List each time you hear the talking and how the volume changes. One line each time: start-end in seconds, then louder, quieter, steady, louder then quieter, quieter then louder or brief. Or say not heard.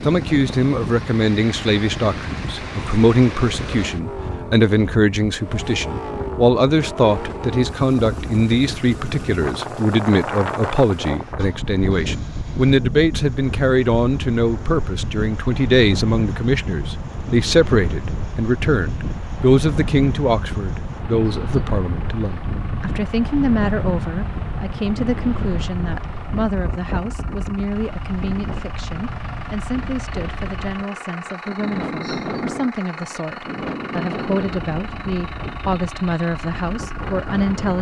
0.0-37.7 quieter.